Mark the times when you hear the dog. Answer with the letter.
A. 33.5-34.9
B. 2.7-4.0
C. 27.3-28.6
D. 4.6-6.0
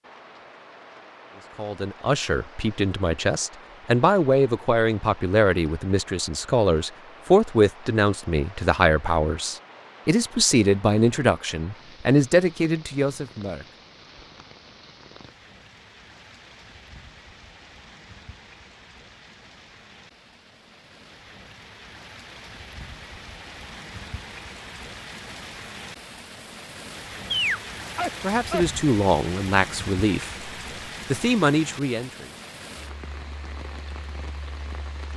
C.